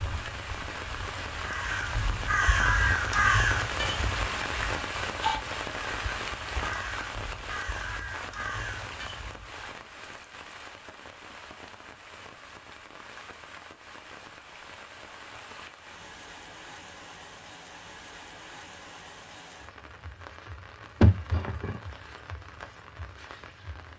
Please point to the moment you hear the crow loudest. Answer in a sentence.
The loudest moment of the crow is at 3 seconds.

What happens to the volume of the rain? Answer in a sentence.
The loudness of the rain goes down.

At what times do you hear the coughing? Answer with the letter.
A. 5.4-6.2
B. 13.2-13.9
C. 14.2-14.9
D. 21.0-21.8
D.